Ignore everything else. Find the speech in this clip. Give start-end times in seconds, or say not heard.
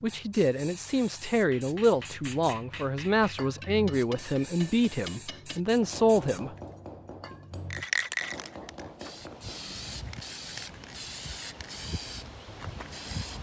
0.0-6.5.